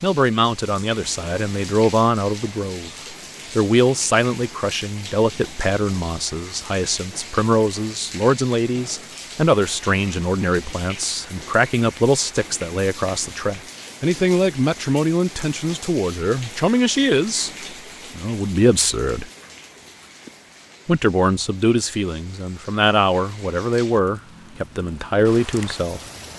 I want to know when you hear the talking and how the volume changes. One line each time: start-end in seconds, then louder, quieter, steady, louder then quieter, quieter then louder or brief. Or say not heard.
0.0-2.9 brief
3.5-17.5 steady
18.1-19.3 brief
20.9-26.0 steady.